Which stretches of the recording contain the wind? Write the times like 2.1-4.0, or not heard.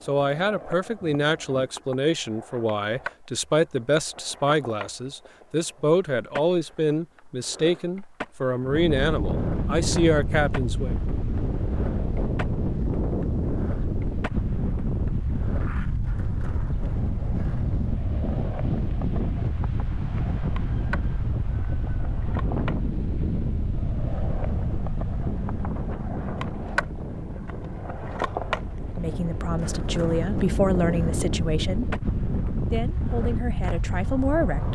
8.6-34.7.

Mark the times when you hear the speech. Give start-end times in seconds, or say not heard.
0.1-10.9, 28.9-31.9, 32.7-34.7.